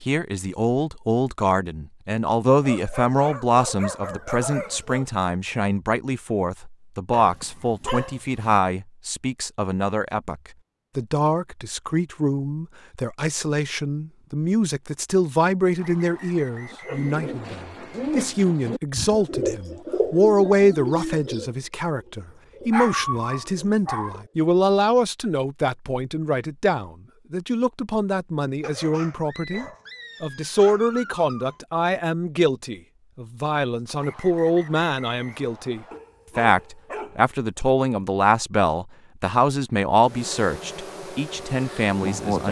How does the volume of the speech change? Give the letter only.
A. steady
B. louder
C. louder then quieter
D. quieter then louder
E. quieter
A.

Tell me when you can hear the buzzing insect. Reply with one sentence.
You can hear the buzzing insect from 40.0 to 42.4 s.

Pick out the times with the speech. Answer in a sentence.
The speech can be heard from 0.0 to 42.4 s.